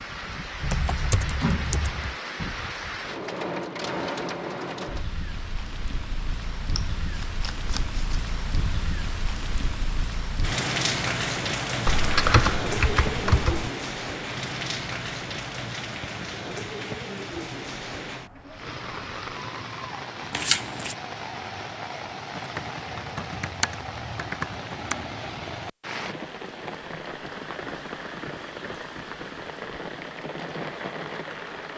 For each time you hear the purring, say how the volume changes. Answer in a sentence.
The purring can't be heard in this clip.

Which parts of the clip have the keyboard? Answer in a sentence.
You can hear the keyboard from 0.6 to 2.1 s, from 11.8 to 13.7 s and from 22.4 to 24.9 s.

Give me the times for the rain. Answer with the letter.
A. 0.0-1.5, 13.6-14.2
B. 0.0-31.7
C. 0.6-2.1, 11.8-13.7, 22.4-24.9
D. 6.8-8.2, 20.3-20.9
B.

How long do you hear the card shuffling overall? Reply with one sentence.
The card shuffling can be heard for 2 seconds in total.